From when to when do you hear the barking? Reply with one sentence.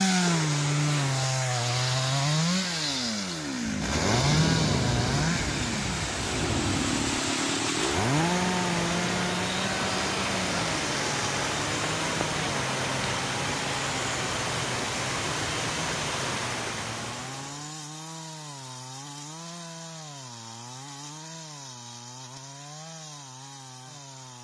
The barking can't be heard in this clip.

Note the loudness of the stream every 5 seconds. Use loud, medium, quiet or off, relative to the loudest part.
medium, loud, loud, loud, off.